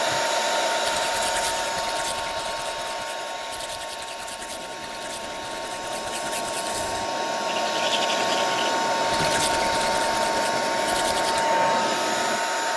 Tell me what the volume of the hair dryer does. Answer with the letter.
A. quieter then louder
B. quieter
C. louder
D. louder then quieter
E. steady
A.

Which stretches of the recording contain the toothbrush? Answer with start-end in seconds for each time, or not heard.
0.8-11.4.